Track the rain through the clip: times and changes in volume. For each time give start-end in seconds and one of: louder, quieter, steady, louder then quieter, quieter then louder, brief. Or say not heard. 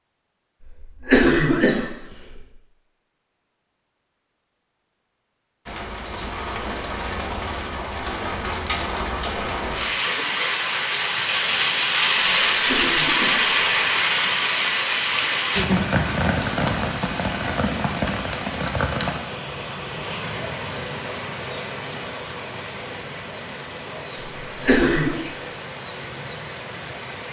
5.7-27.2 louder then quieter.